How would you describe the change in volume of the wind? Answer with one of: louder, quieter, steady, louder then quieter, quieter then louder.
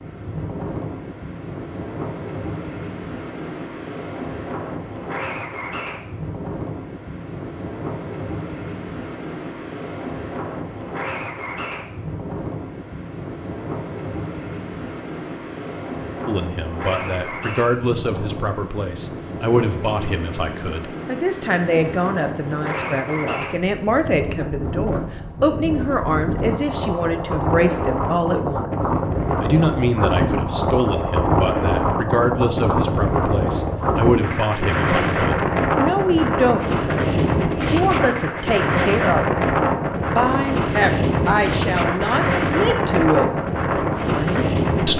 louder.